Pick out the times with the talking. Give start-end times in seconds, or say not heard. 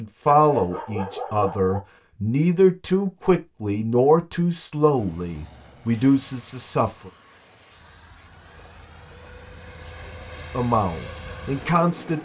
0.0-7.1, 10.5-12.1.